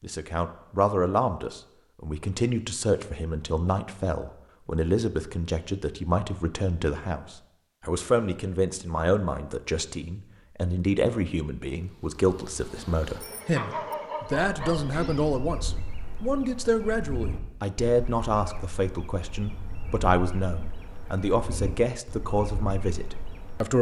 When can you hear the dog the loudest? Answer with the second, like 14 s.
14 s.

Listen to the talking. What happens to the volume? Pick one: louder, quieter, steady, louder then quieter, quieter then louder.
steady.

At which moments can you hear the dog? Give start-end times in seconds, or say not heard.
13.6-15.1.